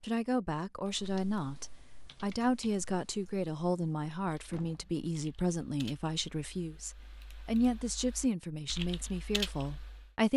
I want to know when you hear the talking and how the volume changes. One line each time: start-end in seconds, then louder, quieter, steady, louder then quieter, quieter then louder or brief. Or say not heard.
0.0-10.3 steady.